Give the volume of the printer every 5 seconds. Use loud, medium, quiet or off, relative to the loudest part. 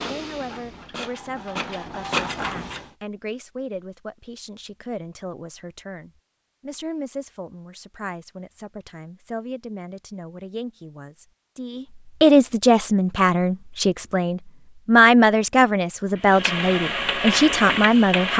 medium, off, off, loud.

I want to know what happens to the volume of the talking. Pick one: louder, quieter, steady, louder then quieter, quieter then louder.
louder.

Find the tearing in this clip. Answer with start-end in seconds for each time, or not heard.
not heard.